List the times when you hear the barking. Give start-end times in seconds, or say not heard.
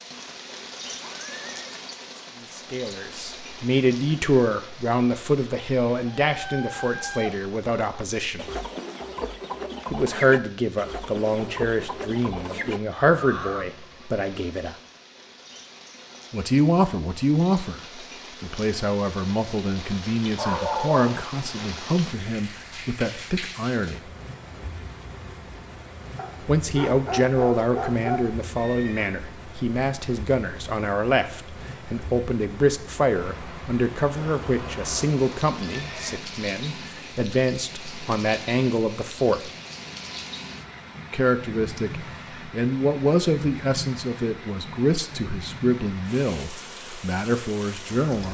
20.4-21.2, 26.1-28.2.